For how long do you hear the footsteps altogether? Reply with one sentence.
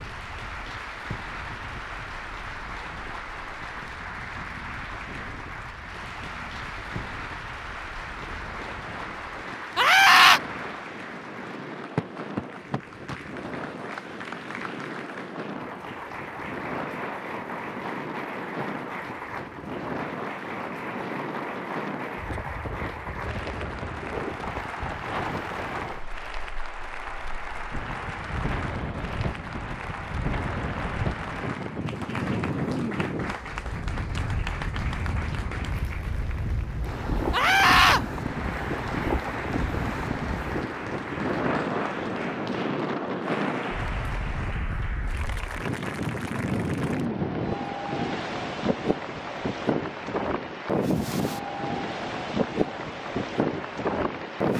You can't hear the footsteps here.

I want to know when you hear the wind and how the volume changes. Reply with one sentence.
The wind can be heard from 0.0 to 54.5 s, getting louder.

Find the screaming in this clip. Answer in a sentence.
The screaming can be heard from 9.8 to 10.4 s and from 37.3 to 38.0 s.